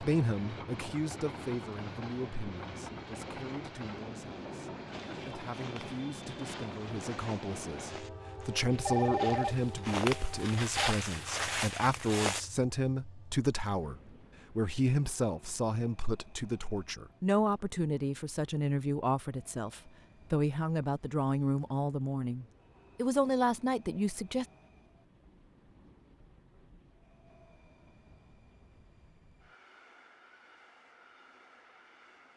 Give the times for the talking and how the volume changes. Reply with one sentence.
The talking can be heard from 0.0 to 24.4 s, getting louder.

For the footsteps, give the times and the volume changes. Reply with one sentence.
You can hear the footsteps from 4.9 to 12.4 s, getting louder.